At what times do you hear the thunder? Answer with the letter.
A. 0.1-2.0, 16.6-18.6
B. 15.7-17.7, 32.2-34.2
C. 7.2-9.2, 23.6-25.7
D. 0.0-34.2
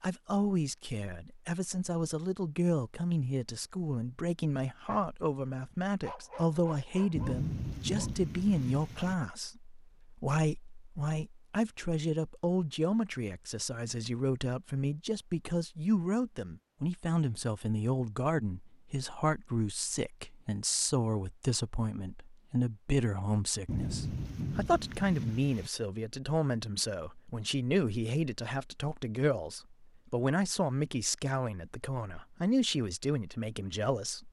C.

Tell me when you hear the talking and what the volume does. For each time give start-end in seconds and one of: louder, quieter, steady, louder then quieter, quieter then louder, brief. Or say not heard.
0.0-34.2 steady.